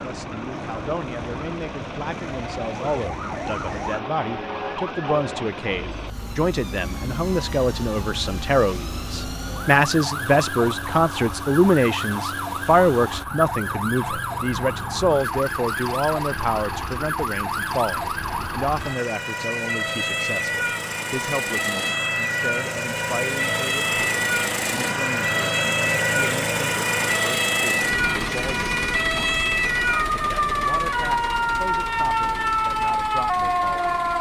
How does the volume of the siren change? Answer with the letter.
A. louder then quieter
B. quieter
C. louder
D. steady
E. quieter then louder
C.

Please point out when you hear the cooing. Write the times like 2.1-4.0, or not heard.
not heard.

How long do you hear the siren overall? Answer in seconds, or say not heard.
34 s.